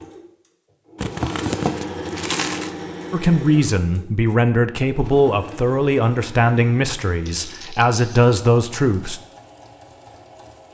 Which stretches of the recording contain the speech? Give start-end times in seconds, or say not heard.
3.1-9.2.